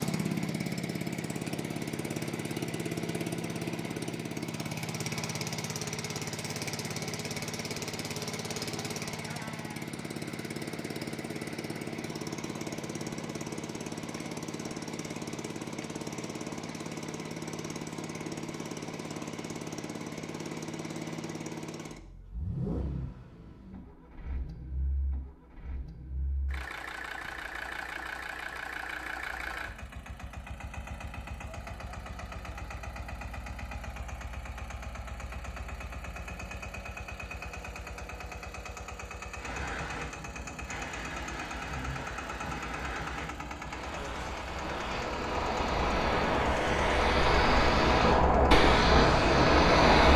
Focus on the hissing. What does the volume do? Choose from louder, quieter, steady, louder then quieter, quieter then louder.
louder.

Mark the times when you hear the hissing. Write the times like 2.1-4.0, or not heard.
39.4-50.1.